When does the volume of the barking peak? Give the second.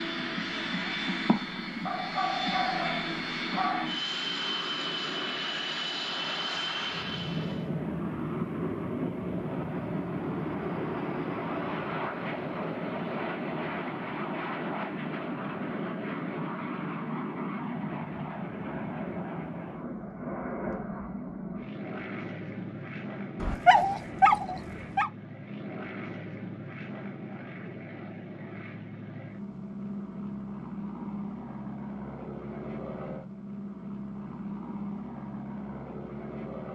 24 s.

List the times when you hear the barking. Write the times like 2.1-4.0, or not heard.
1.9-3.9, 23.4-25.1.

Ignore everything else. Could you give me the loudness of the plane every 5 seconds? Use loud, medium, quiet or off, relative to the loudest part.
loud, loud, loud, loud, medium, medium, medium, medium.